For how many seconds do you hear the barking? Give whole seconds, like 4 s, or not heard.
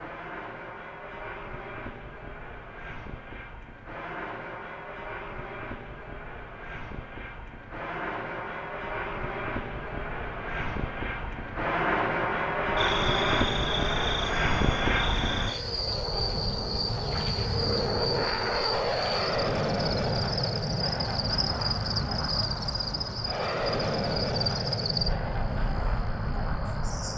not heard.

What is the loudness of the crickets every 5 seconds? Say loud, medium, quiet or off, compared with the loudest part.
off, off, loud, loud, loud, medium.